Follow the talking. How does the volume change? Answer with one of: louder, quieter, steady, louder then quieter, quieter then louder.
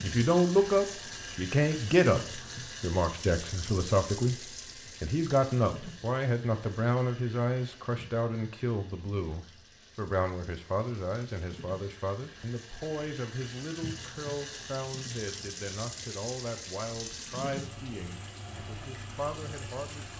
quieter.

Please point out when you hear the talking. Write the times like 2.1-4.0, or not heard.
0.0-20.1.